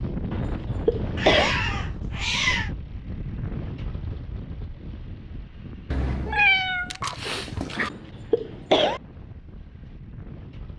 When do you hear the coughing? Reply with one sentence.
You can hear the coughing from 0.3 to 1.6 s and from 7.8 to 9.0 s.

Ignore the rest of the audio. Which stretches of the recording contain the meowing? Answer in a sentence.
The meowing can be heard from 1.1 to 2.7 s and from 5.9 to 7.9 s.